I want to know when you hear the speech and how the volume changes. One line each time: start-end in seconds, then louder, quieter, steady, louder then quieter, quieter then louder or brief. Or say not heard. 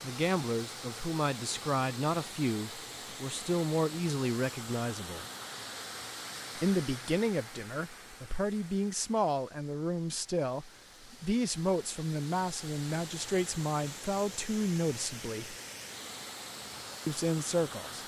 0.0-5.2 steady
6.5-15.6 steady
17.1-18.0 brief.